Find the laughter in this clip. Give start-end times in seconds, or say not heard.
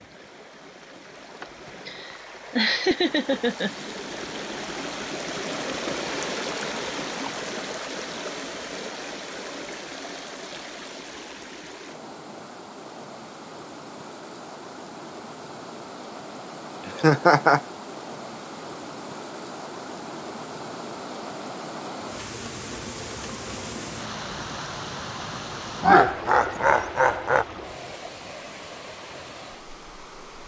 1.4-3.7, 16.9-17.6, 25.8-27.4.